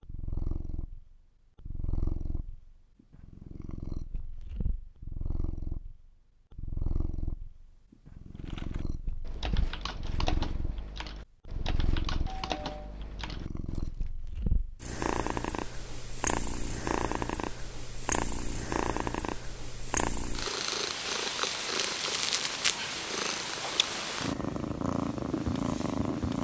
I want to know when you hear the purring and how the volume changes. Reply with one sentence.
You can hear the purring from 0.0 to 26.4 s, getting louder.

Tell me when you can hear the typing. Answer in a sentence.
You can hear the typing from 8.3 to 14.0 s.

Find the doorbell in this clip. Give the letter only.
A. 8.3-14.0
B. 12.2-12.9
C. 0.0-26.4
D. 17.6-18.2
B.